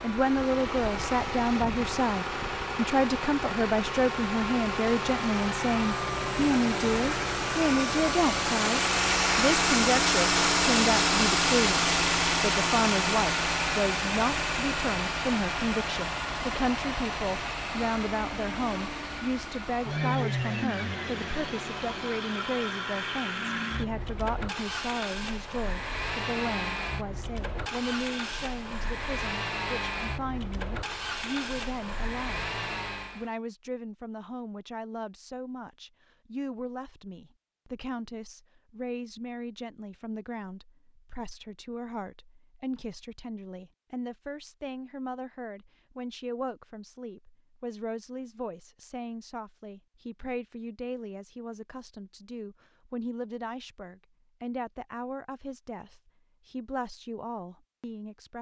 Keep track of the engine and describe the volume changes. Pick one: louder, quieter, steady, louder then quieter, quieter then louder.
louder then quieter.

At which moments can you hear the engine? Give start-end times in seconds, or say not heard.
0.0-33.3.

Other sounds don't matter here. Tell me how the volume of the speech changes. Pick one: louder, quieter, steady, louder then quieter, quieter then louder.
quieter.